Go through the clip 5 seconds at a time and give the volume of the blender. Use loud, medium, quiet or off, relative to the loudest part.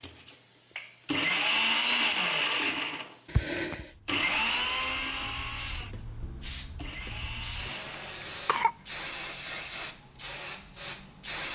loud, medium, off.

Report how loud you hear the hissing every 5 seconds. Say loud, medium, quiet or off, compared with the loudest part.
quiet, loud, loud.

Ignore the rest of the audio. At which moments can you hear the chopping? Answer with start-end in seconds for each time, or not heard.
not heard.